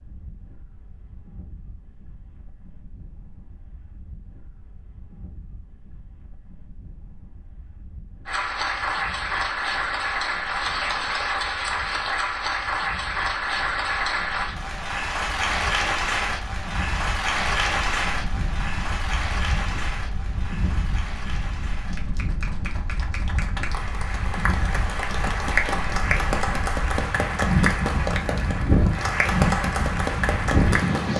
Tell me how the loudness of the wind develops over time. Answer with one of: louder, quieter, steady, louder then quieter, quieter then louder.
louder.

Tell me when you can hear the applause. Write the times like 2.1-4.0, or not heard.
8.2-31.1.